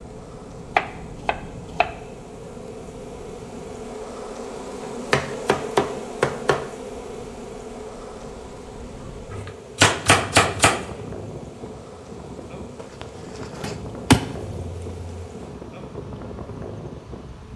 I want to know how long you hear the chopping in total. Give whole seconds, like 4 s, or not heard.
6 s.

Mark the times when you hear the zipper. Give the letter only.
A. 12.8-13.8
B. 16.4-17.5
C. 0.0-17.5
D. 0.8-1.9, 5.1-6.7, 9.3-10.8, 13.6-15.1
A.